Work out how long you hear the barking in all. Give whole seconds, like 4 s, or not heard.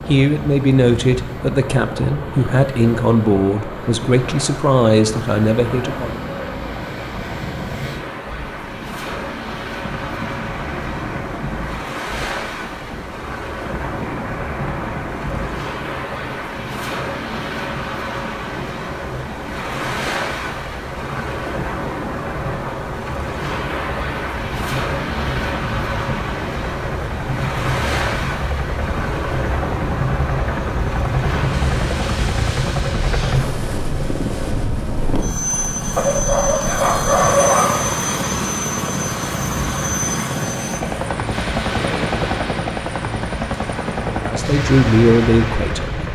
2 s.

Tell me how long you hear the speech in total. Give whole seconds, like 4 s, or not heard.
8 s.